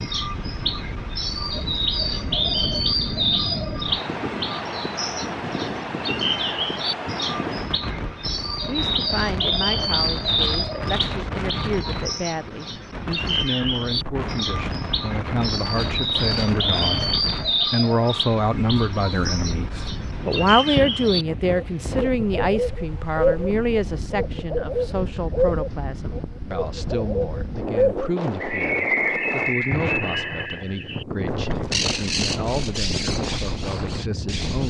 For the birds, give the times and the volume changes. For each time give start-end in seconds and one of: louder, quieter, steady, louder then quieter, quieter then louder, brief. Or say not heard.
0.0-34.6 steady.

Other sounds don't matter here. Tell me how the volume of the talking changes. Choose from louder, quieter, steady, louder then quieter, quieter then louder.
louder then quieter.